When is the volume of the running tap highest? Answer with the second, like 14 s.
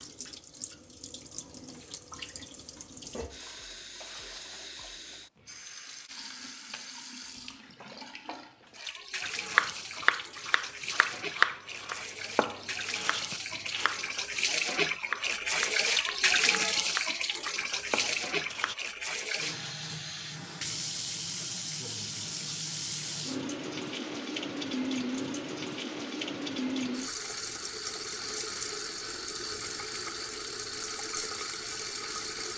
16 s.